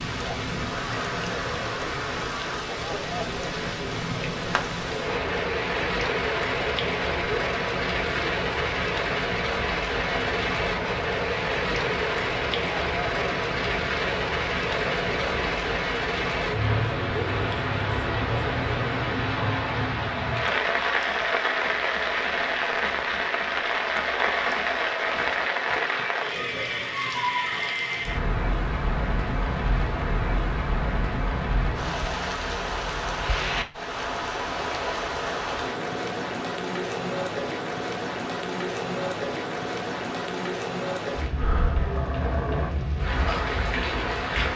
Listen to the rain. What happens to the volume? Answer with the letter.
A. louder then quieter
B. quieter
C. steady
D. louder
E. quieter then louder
C.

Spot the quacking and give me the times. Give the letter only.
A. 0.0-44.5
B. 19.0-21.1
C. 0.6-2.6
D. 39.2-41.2
C.